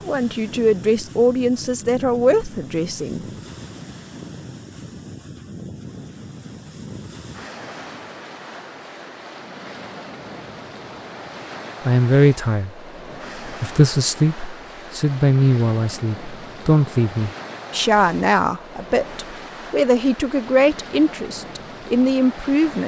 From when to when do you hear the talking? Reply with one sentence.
The talking can be heard from 0.0 to 3.2 s, from 11.8 to 12.8 s and from 13.4 to 22.8 s.